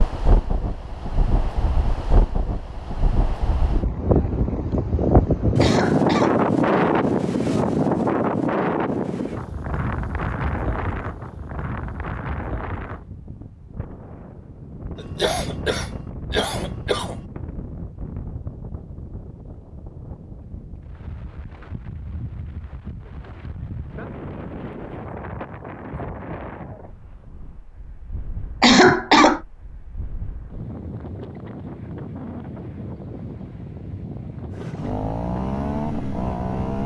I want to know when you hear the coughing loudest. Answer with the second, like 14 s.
29 s.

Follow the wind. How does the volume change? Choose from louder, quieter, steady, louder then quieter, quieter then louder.
quieter.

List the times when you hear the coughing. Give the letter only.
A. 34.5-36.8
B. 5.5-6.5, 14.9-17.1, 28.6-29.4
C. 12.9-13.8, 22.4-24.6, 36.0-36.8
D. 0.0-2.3
B.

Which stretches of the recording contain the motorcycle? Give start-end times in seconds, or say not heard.
34.5-36.8.